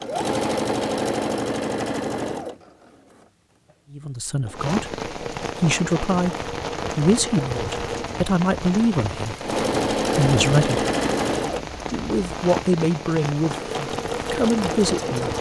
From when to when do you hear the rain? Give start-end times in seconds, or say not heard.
4.5-15.3.